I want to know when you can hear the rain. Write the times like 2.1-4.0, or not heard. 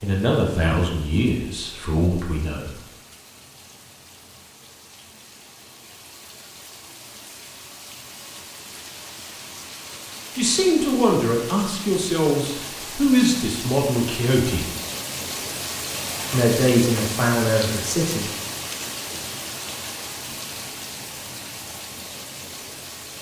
0.0-23.1.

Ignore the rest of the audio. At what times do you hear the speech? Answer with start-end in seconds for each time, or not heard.
0.0-2.7, 10.3-14.7, 16.3-18.3.